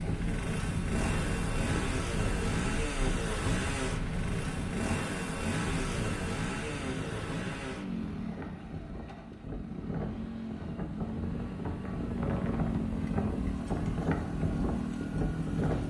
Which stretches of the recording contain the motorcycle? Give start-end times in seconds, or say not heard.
0.0-15.8.